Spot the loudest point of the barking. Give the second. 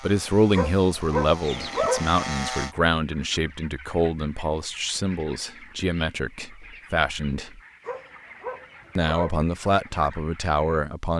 2 s.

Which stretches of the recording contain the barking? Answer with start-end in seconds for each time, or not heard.
0.5-2.1, 7.8-9.4.